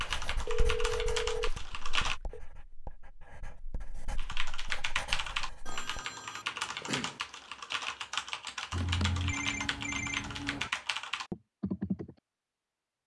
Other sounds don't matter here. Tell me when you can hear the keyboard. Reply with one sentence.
You can hear the keyboard from 0.0 to 2.1 s and from 4.2 to 12.2 s.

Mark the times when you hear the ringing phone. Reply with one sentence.
You can hear the ringing phone from 0.5 to 2.4 s, from 5.7 to 7.2 s and from 8.7 to 10.7 s.